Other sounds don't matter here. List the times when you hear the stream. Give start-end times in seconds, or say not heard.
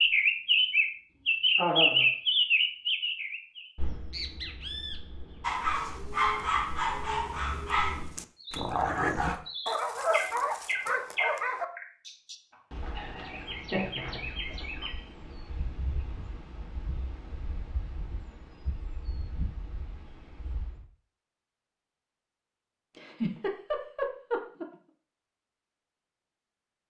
not heard.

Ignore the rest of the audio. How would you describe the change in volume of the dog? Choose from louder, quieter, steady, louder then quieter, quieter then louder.
steady.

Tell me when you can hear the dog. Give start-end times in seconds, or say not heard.
5.4-11.7.